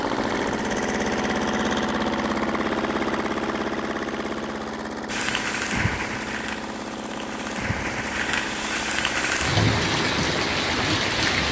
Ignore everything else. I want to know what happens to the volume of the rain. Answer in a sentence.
The volume of the rain goes down, then up.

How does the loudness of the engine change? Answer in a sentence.
The loudness of the engine goes down.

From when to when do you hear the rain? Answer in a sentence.
You can hear the rain from 5.0 to 11.4 s.